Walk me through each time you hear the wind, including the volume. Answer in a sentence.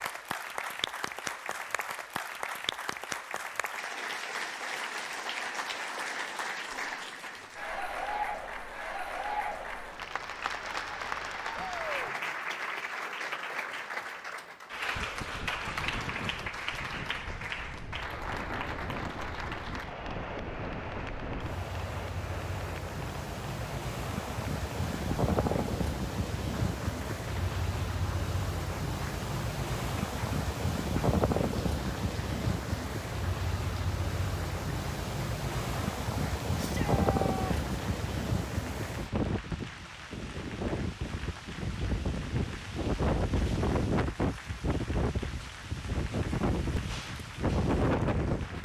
The wind can be heard from 14.9 to 48.6 s, getting louder.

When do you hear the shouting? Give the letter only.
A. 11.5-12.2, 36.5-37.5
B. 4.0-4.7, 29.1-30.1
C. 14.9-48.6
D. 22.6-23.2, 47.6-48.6
A.